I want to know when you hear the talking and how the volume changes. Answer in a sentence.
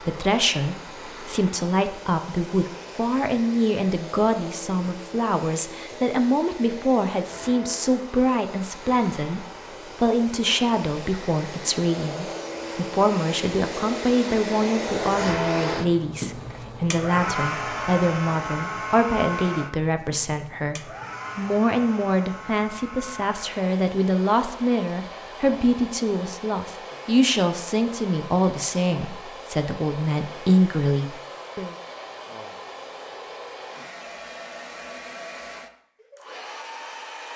The talking can be heard from 0.0 to 31.8 s, at a steady volume.